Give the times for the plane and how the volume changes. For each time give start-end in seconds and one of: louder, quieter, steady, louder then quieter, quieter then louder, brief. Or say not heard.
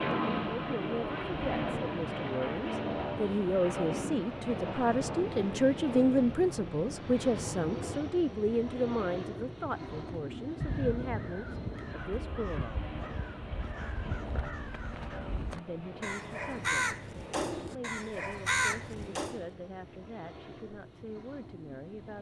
0.0-22.1 quieter.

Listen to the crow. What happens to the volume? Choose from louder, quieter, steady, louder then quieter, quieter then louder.
louder.